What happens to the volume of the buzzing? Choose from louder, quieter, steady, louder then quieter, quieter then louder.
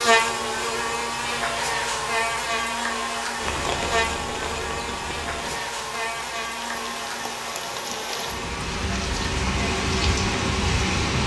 quieter.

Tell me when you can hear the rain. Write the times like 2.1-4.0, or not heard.
3.4-11.2.